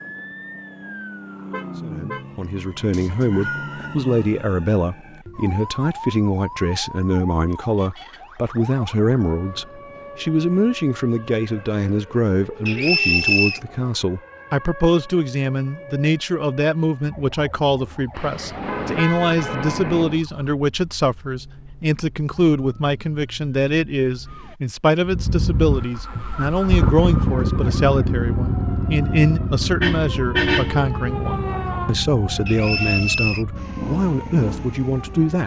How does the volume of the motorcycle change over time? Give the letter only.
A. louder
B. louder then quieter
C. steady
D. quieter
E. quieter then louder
D.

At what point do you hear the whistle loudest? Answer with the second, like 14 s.
13 s.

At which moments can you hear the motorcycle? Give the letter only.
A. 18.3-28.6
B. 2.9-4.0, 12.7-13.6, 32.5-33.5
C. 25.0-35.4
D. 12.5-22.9
C.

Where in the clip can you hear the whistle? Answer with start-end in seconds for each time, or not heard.
2.9-4.0, 12.7-13.6, 32.5-33.5.